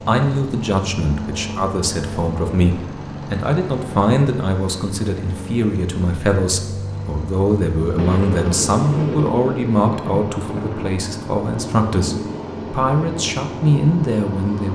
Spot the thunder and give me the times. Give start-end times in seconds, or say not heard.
8.0-11.0.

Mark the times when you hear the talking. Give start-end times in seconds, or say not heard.
0.1-14.6.